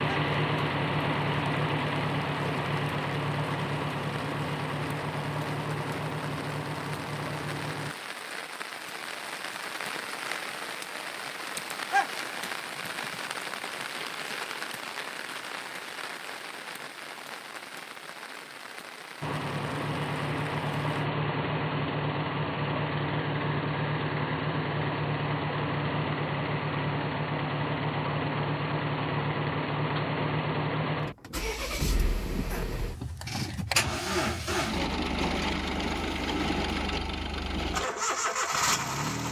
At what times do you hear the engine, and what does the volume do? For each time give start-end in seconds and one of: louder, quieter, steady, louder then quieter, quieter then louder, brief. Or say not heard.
0.0-8.0 quieter
19.2-39.2 steady.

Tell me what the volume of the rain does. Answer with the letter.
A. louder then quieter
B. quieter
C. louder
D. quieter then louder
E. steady
A.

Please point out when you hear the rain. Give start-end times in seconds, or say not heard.
0.0-21.1.